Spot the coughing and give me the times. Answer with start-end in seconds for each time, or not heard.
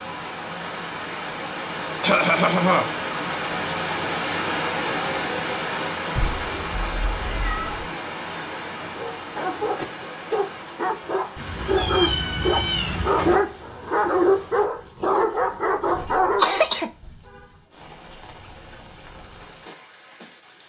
2.0-2.9, 8.5-8.9, 9.8-10.4, 16.4-16.9.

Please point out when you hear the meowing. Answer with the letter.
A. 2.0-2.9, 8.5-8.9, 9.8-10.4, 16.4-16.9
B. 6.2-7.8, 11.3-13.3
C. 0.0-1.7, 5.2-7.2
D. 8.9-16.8
B.